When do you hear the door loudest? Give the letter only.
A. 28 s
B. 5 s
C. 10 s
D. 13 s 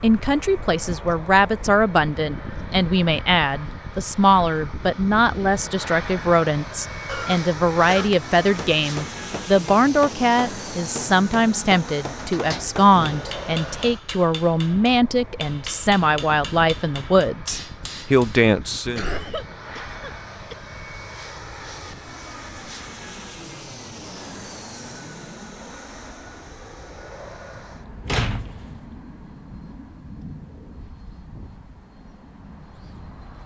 A.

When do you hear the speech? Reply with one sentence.
You can hear the speech from 0.0 to 19.1 s.